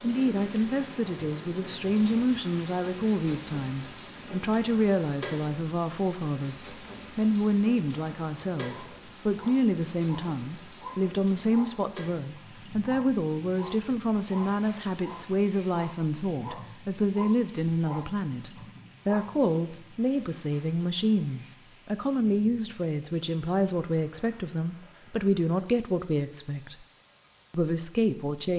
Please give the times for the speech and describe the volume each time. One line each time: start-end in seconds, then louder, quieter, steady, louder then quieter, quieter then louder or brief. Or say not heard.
0.0-26.8 steady
27.5-28.5 brief.